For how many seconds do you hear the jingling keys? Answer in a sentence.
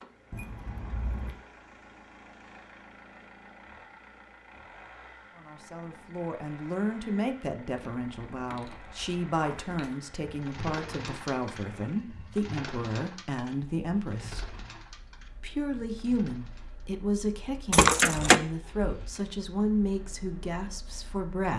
You can hear the jingling keys for 4 seconds altogether.